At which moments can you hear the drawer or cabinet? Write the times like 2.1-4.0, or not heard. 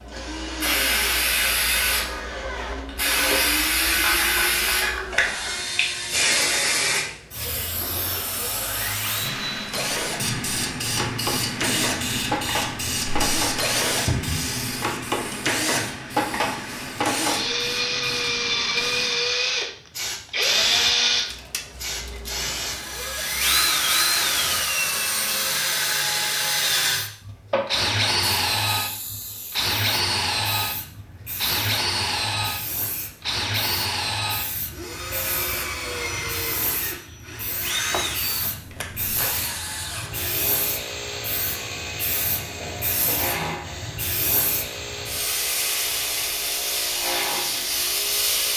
14.1-14.5, 42.6-43.6.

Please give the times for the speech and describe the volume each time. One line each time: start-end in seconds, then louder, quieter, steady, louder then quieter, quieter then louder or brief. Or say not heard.
not heard.